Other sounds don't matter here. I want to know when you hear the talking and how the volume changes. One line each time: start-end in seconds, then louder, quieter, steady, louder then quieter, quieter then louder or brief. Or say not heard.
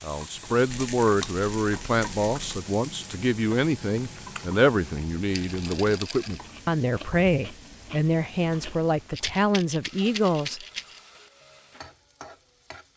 0.0-10.6 steady.